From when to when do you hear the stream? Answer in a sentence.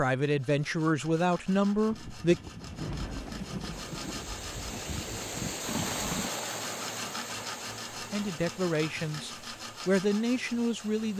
The stream can be heard from 3.7 to 11.1 s.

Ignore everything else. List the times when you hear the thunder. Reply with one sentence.
The thunder can be heard from 1.9 to 6.3 s.